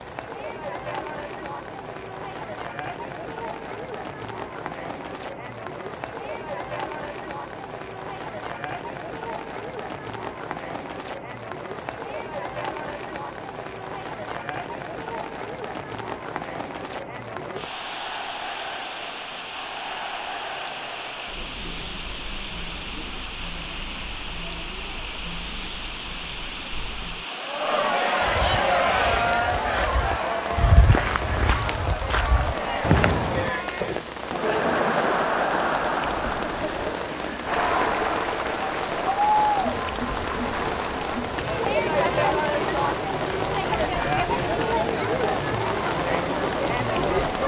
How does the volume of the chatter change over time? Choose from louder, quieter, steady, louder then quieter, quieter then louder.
louder.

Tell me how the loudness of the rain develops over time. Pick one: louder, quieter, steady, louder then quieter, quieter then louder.
louder.